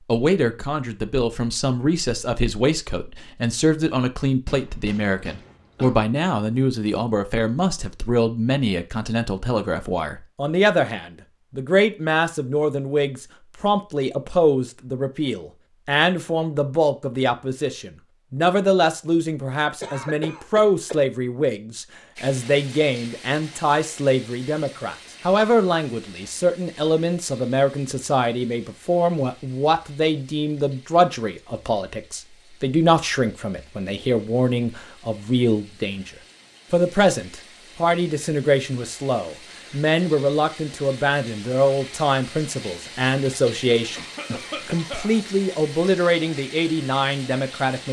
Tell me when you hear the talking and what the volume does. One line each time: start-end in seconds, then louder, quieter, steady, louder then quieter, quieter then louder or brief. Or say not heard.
0.1-36.1 steady
36.7-47.8 steady.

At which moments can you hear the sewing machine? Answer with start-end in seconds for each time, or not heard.
not heard.